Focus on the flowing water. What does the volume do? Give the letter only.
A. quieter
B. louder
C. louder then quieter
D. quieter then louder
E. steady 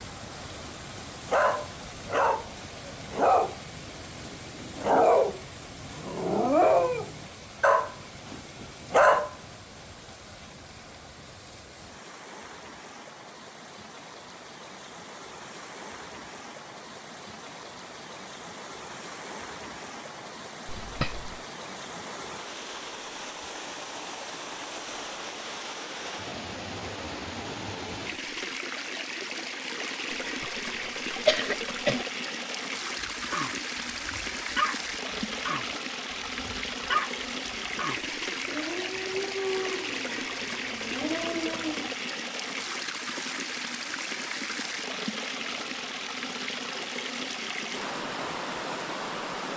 B.